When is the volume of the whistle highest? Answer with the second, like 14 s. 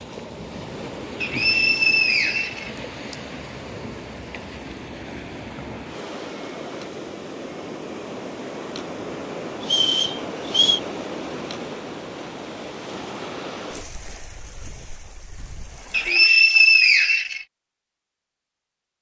17 s.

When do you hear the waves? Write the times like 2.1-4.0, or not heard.
0.0-16.1.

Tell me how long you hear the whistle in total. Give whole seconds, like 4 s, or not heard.
5 s.